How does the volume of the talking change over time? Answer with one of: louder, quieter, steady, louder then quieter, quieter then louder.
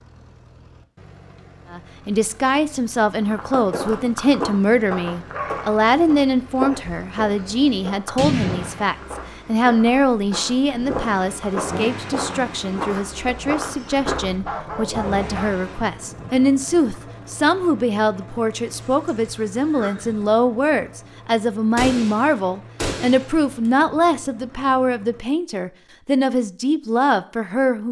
steady.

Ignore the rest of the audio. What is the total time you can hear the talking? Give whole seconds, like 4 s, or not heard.
26 s.